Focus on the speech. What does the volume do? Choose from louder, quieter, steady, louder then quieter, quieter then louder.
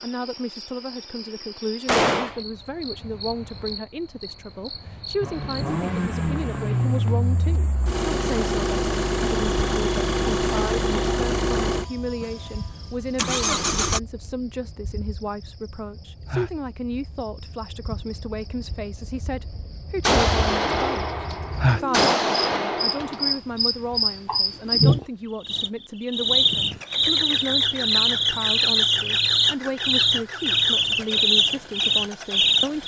steady.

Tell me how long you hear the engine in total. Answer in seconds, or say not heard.
15 s.